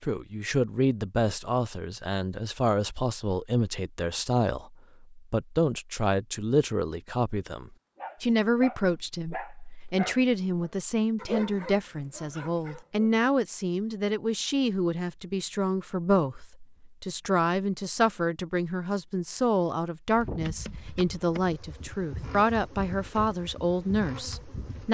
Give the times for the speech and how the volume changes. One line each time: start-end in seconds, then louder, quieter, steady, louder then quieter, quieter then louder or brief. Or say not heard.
0.0-24.8 steady.